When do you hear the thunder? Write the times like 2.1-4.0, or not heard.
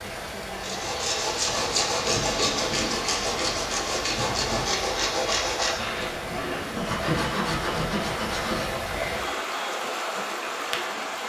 1.4-4.8.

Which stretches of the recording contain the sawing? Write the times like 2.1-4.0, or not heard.
0.6-8.9.